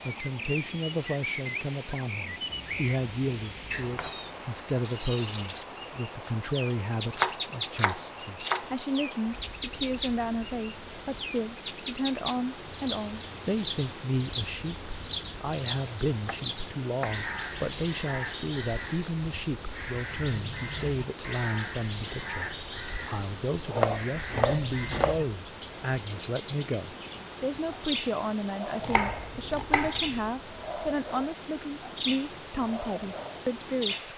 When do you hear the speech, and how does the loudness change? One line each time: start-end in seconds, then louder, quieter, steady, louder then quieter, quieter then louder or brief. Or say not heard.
0.0-34.1 steady.